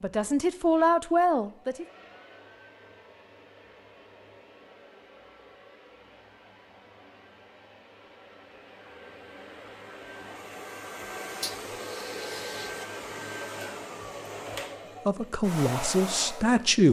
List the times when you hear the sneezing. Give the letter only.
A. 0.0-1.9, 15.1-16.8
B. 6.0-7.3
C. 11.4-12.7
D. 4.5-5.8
C.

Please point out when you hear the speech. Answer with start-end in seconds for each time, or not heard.
0.0-1.9, 15.1-16.8.